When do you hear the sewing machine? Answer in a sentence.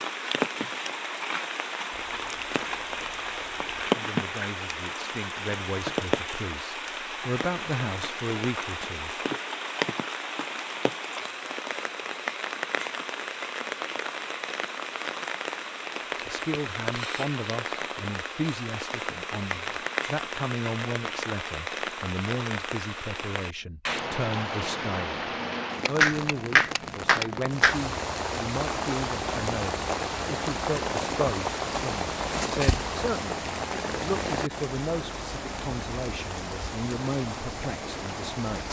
The sewing machine can't be heard in this clip.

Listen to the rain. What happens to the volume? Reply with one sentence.
The loudness of the rain stays about the same.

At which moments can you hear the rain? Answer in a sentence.
You can hear the rain from 0.0 to 38.6 s.